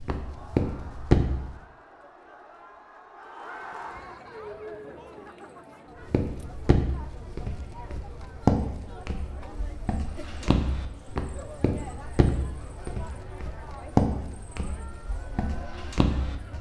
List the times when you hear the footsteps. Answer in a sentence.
You can hear the footsteps from 0.0 to 1.5 s and from 6.0 to 16.5 s.